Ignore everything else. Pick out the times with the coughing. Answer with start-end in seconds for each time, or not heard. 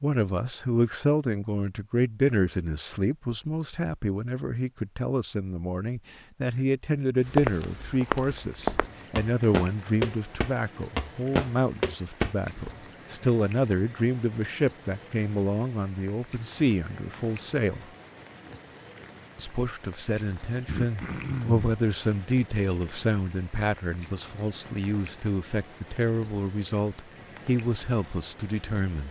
20.6-21.6.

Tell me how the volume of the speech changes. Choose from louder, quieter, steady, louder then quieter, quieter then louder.
steady.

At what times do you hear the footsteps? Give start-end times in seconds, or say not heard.
7.3-12.8.